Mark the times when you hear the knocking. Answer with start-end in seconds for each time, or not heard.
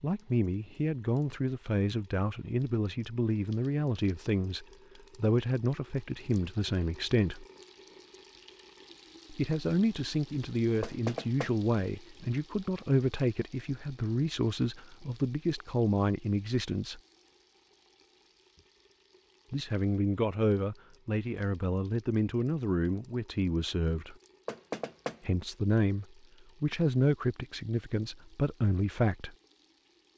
10.8-11.6, 24.4-25.2.